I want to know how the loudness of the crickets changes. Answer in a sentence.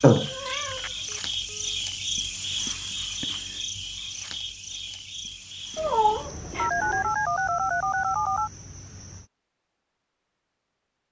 The volume of the crickets goes down.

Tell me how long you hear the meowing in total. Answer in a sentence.
The meowing can be heard for 2 seconds in total.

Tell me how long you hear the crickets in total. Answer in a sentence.
You can hear the crickets for 9 seconds altogether.